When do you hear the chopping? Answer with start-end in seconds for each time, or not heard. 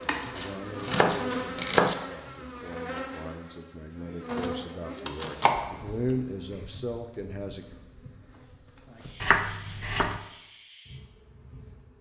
0.3-1.9, 4.3-5.8, 9.2-10.2.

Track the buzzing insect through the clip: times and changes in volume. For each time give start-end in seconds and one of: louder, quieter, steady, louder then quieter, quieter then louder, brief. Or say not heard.
0.0-11.9 quieter.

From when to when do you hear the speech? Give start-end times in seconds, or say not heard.
0.0-7.8.